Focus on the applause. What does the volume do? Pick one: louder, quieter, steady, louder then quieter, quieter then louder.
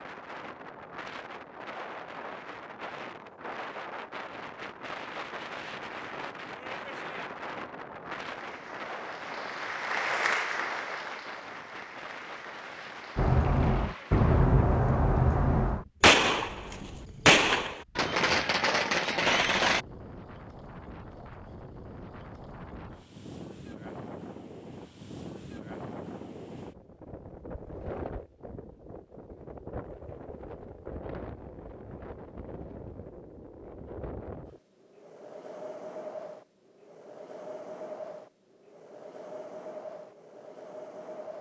louder then quieter.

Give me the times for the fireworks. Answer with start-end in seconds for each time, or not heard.
13.2-19.8.